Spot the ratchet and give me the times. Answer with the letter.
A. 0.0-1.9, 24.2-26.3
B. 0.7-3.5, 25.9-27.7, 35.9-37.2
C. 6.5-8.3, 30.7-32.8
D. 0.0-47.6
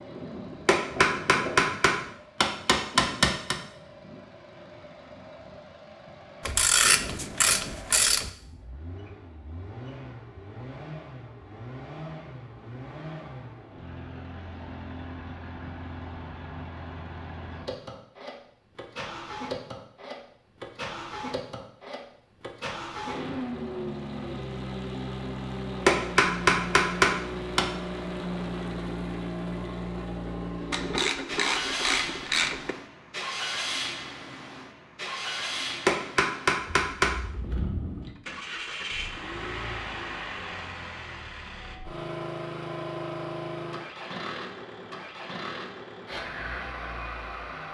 C.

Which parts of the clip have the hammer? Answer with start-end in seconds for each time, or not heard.
0.7-3.5, 25.9-27.7, 35.9-37.2.